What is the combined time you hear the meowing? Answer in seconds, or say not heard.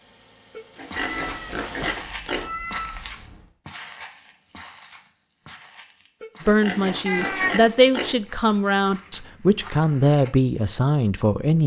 3 s.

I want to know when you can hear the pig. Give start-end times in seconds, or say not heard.
0.6-2.5, 6.2-8.2.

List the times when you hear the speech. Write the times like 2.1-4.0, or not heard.
6.5-11.6.